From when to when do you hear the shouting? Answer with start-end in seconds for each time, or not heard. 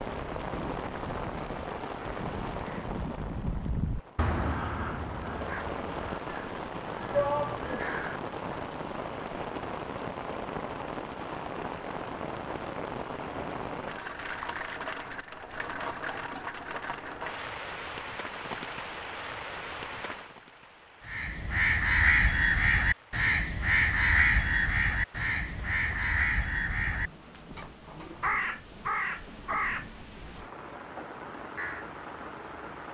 7.1-7.8.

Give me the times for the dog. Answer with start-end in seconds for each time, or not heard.
not heard.